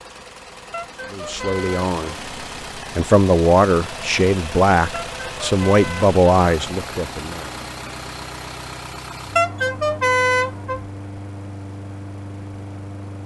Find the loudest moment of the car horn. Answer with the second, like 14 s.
10 s.